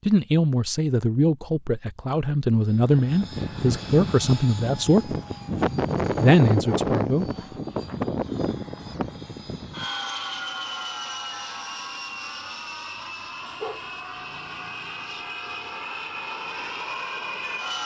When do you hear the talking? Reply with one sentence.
You can hear the talking from 0.1 to 5.2 s and from 6.2 to 7.2 s.